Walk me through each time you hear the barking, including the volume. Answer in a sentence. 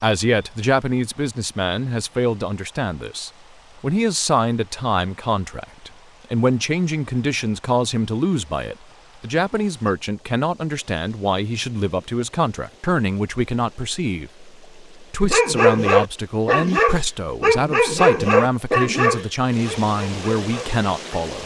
You can hear the barking from 15.2 to 21.2 s, getting quieter.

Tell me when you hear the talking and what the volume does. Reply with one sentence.
You can hear the talking from 0.0 to 21.4 s, at a steady volume.